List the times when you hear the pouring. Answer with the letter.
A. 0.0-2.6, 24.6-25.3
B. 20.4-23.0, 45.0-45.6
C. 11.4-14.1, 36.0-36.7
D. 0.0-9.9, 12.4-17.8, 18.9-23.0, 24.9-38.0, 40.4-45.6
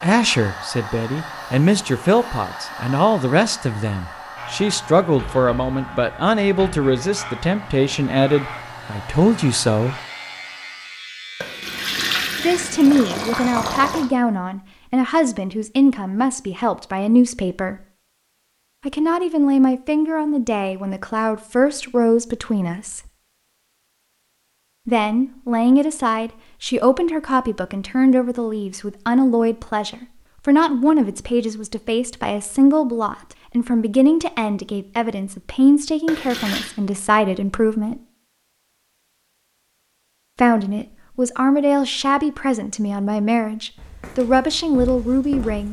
C.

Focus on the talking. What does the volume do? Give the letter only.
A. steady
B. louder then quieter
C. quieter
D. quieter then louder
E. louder
A.